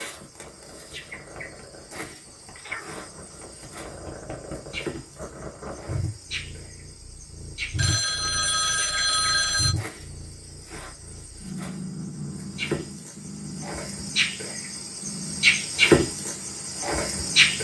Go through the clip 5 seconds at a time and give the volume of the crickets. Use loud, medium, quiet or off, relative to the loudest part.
quiet, quiet, quiet, loud.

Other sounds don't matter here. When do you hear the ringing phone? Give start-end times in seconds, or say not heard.
7.8-9.8.